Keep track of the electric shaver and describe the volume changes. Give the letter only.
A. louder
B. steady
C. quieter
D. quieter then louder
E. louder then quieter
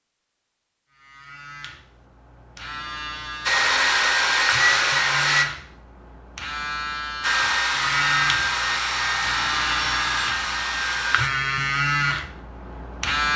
A.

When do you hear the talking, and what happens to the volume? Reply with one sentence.
You can't hear the talking here.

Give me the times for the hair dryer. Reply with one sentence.
The hair dryer can be heard from 3.5 to 5.5 s and from 7.2 to 11.3 s.